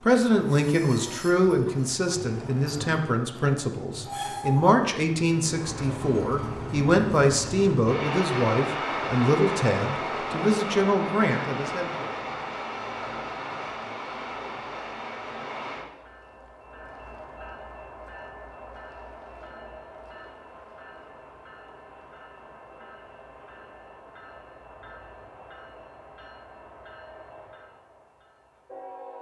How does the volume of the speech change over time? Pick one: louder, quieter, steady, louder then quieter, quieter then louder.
steady.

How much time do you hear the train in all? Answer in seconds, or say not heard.
29 s.